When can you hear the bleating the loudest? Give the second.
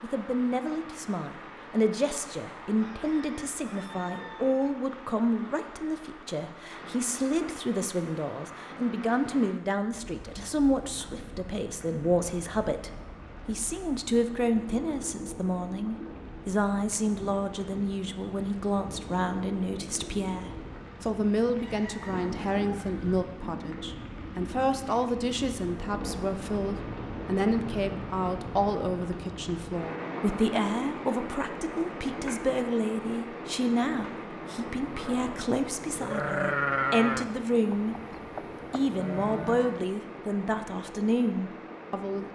37 s.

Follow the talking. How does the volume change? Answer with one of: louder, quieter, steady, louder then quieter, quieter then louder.
steady.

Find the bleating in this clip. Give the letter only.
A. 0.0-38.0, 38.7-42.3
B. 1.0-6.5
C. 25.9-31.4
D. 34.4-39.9
D.